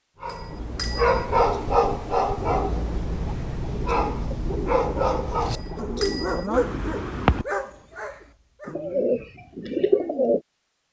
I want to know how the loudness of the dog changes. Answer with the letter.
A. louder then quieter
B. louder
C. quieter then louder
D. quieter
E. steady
D.